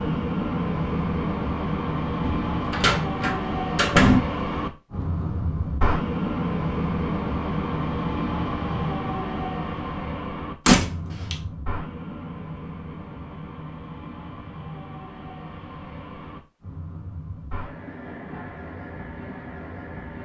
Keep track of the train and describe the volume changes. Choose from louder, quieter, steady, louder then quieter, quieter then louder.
quieter.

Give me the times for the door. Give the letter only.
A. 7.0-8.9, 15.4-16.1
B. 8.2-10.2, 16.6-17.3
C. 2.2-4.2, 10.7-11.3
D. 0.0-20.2
C.